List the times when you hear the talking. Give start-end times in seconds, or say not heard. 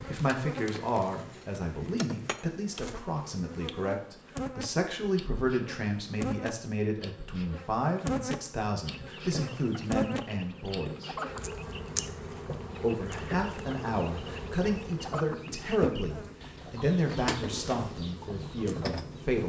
0.0-11.1, 12.8-19.4.